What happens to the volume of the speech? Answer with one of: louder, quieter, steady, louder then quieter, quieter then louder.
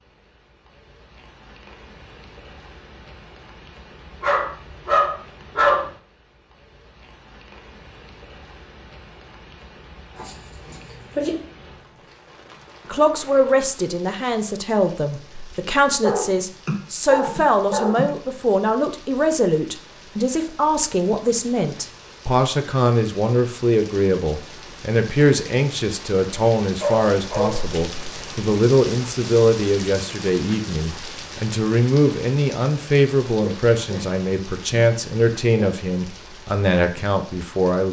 steady.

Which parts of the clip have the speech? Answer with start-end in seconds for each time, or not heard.
12.8-37.8.